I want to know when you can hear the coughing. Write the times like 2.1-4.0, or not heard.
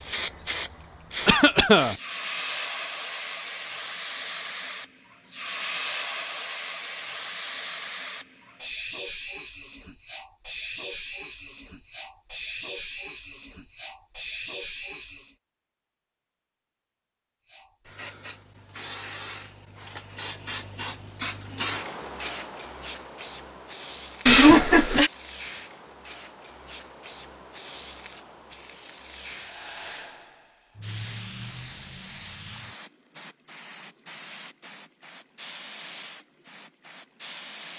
1.2-1.9, 24.2-25.1.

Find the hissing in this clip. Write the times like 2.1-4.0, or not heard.
0.0-15.3, 17.4-37.7.